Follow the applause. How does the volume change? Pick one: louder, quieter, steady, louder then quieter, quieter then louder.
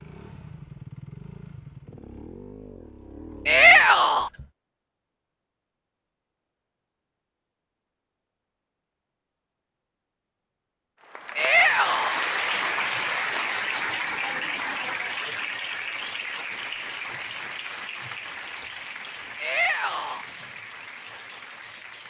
quieter.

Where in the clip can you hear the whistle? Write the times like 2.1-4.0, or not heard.
not heard.